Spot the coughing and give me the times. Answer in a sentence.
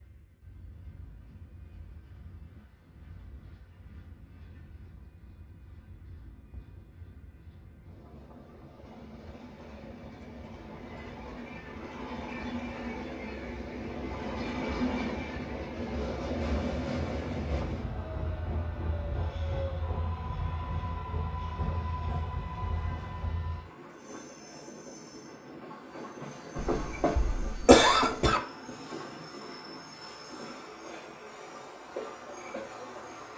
You can hear the coughing from 26.7 to 28.4 s.